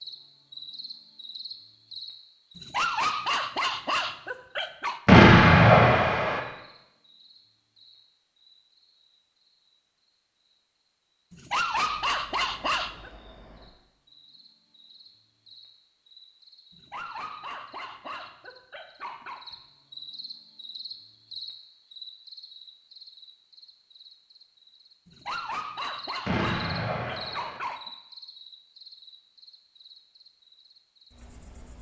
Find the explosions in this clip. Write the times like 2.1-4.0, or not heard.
5.0-6.4, 26.2-27.6.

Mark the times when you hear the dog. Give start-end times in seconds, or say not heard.
2.5-5.0, 11.3-13.1, 16.7-19.4, 25.1-27.8.